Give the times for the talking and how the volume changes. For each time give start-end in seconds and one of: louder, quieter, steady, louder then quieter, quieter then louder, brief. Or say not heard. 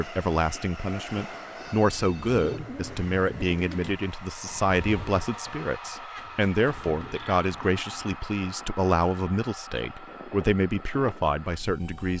0.0-12.1 steady.